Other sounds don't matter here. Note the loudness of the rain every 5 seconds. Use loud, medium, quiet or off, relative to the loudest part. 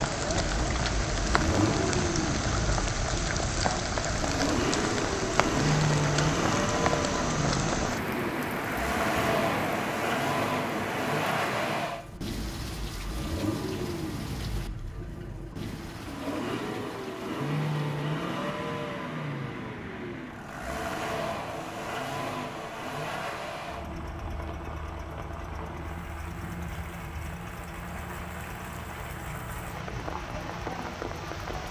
loud, loud, medium, quiet, quiet, quiet, medium.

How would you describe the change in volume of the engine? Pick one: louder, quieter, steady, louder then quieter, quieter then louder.
quieter.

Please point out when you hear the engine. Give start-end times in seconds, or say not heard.
0.1-31.6.